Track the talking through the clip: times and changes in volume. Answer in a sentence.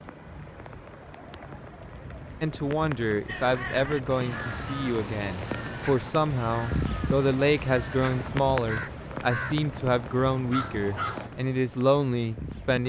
You can hear the talking from 2.4 to 12.8 s, at a steady volume.